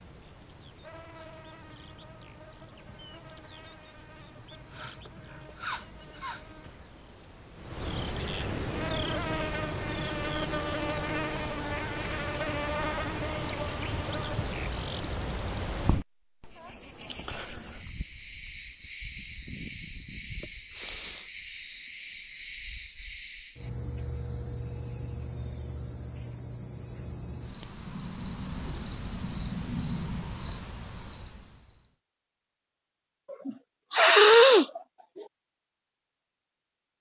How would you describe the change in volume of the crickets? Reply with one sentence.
The volume of the crickets goes up.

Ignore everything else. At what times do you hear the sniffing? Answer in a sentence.
The sniffing can be heard from 4.7 to 6.5 s, from 20.7 to 21.3 s and from 33.3 to 34.8 s.